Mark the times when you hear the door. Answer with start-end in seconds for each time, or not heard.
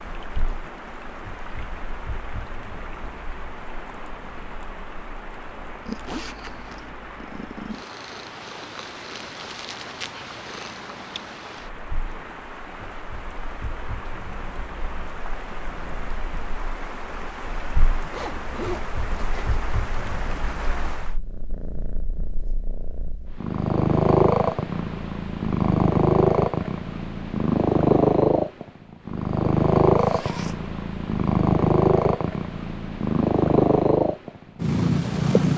not heard.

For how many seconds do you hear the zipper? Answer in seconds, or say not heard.
3 s.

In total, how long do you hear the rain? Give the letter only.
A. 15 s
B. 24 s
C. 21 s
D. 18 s
C.